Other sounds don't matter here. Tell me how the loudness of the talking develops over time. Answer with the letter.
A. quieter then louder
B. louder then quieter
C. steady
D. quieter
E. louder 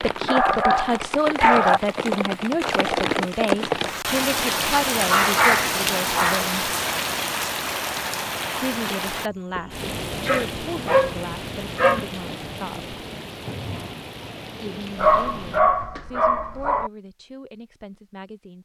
D.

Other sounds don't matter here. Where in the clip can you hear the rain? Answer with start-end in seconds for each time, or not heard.
0.0-15.6.